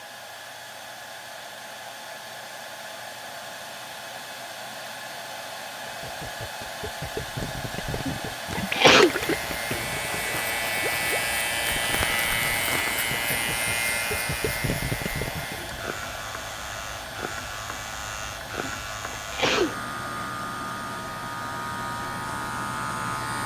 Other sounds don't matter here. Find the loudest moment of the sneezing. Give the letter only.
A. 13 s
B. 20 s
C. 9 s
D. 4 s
C.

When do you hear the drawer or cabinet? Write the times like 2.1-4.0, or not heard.
not heard.